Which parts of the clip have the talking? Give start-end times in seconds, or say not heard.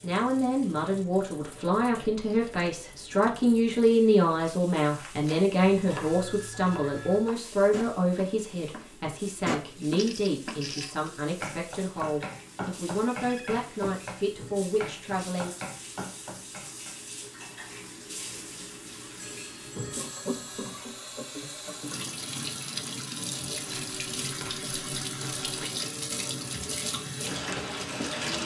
0.0-15.5.